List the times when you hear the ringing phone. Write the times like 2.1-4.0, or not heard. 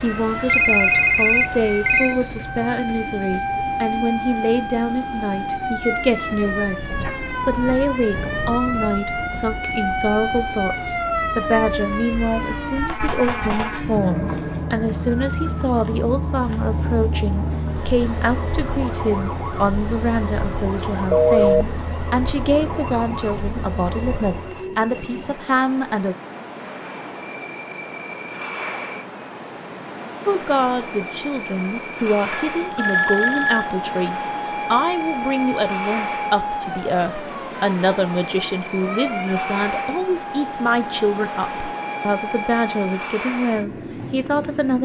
0.5-2.1, 21.1-21.6, 32.3-33.7.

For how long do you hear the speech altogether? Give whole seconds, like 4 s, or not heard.
41 s.